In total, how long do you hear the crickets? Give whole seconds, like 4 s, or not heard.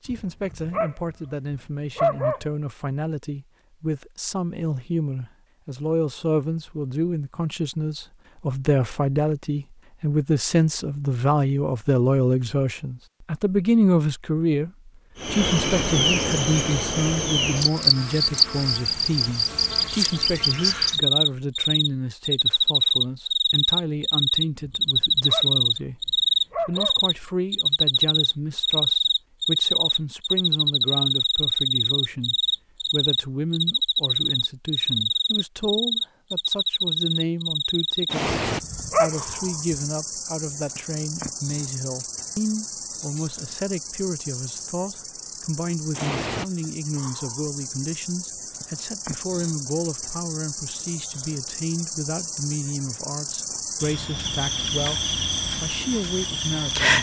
42 s.